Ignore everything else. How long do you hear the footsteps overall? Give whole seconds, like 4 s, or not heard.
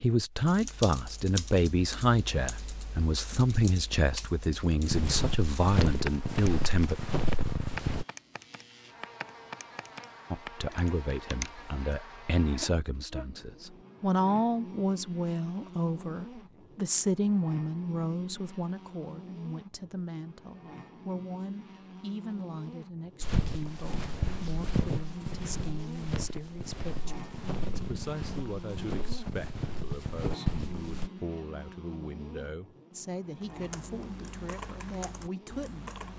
11 s.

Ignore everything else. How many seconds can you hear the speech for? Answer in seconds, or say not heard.
33 s.